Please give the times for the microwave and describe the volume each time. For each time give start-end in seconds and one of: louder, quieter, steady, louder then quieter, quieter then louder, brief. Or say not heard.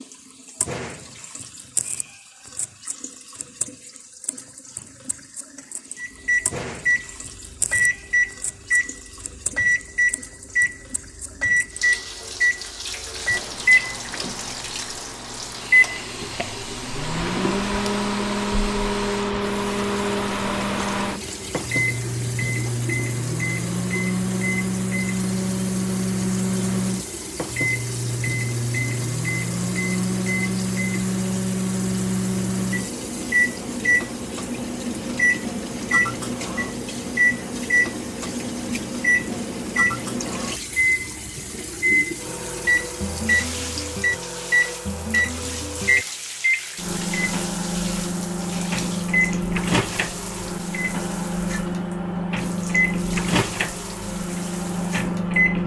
6.0-55.6 steady.